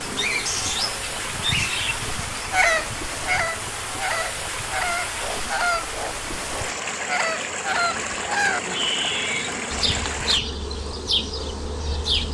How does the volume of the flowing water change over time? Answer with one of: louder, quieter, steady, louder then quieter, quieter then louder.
steady.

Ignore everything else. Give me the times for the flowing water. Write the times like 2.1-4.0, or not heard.
0.0-10.4.